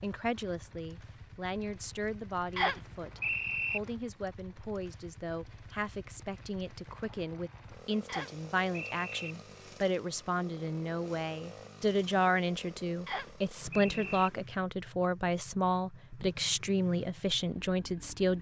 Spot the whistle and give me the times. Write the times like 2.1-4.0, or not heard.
2.5-3.8, 8.1-9.1, 13.1-14.3.